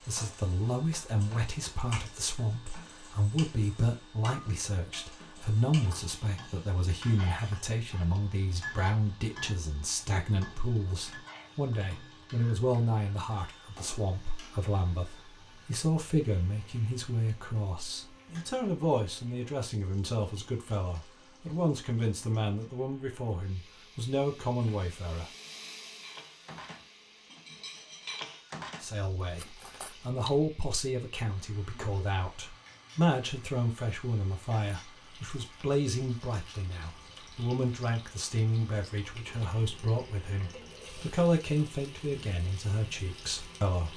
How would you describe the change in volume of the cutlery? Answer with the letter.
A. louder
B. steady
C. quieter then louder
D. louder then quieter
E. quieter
D.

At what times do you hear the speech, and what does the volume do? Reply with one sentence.
The speech can be heard from 0.1 to 25.2 s, at a steady volume; and from 28.8 to 43.9 s, at a steady volume.